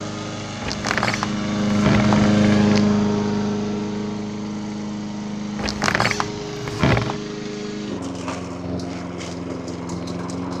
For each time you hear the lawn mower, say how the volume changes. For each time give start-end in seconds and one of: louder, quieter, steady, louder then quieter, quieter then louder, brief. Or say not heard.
0.0-10.5 quieter.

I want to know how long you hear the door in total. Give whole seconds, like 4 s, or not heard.
4 s.